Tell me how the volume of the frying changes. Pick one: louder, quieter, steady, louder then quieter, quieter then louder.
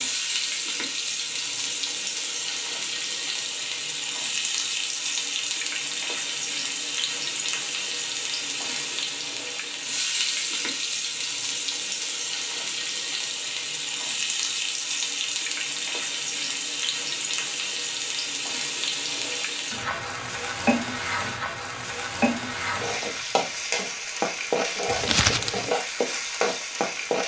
steady.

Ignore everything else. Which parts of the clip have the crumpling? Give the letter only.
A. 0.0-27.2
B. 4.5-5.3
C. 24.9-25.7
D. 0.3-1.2
C.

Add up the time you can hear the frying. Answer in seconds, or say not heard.
27 s.